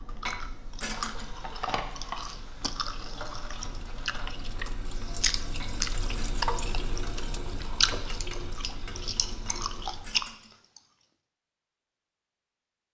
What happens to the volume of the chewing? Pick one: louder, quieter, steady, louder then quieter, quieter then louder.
louder.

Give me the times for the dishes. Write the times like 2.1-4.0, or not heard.
0.1-1.3, 5.4-6.5, 9.3-10.6.